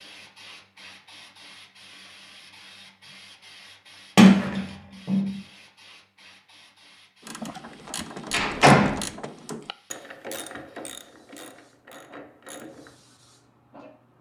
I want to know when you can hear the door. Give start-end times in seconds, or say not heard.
4.2-5.3, 8.3-9.0.